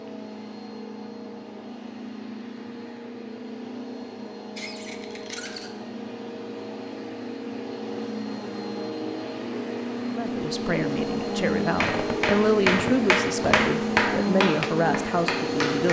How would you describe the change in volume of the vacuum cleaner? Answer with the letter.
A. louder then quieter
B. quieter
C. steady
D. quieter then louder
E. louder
E.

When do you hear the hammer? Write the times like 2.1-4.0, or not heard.
11.8-15.8.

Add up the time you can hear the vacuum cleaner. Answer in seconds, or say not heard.
16 s.